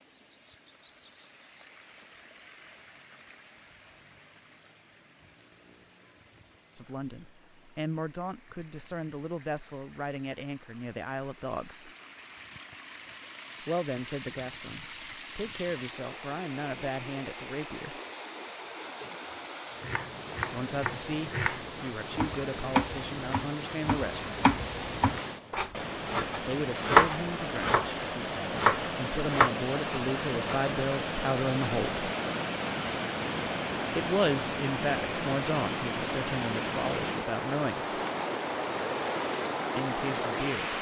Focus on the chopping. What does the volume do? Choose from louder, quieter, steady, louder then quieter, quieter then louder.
louder.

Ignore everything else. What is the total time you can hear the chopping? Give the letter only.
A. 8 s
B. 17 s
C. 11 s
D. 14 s
C.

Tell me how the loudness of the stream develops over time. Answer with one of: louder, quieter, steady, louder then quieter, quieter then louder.
louder.